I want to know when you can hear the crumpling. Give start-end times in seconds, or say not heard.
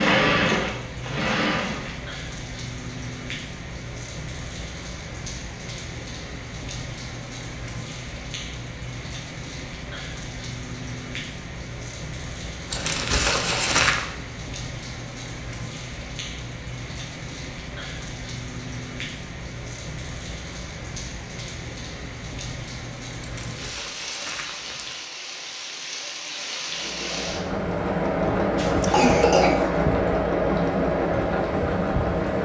12.7-14.1, 23.2-24.9.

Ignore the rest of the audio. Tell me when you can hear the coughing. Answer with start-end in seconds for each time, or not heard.
28.6-29.8.